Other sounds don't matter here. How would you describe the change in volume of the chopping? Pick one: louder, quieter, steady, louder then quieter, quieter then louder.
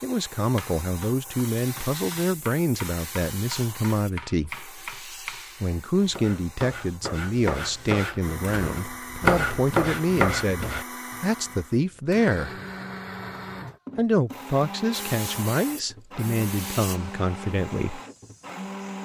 louder.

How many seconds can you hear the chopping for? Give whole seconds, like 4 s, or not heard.
11 s.